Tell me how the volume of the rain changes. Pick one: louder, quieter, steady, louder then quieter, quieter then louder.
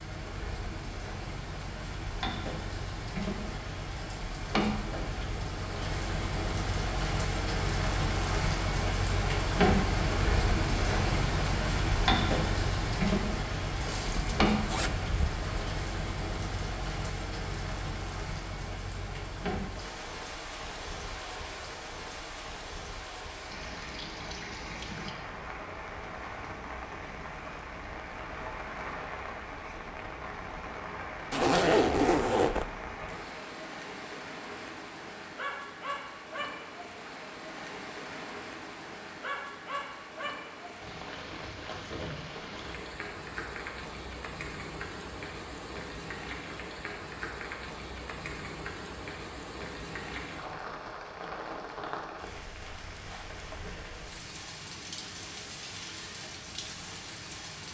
quieter.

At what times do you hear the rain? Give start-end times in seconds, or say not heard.
0.0-57.6.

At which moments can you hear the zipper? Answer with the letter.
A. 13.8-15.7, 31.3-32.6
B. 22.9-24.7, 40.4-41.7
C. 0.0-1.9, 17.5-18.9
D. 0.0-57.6
A.